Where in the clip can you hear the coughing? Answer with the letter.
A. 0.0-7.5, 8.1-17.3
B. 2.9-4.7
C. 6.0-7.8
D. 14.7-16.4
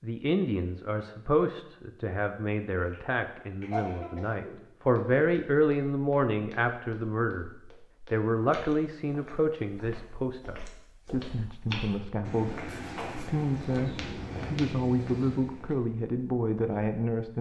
B.